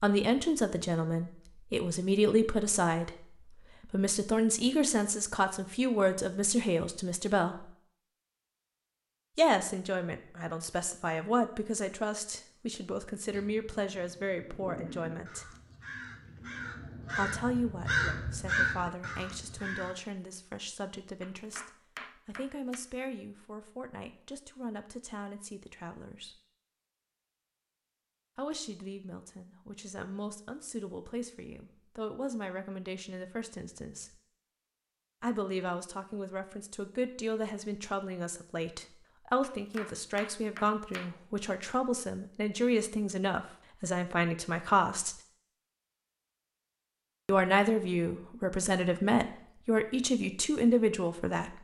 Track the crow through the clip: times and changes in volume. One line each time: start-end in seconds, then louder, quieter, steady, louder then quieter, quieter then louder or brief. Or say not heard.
13.3-19.9 louder.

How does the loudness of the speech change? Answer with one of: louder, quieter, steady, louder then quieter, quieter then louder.
quieter then louder.